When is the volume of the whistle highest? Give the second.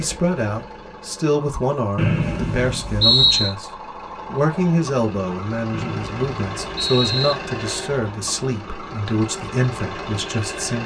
3 s.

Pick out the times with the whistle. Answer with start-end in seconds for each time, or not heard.
1.9-3.5, 5.7-7.3.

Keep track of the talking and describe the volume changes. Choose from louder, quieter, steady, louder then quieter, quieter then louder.
steady.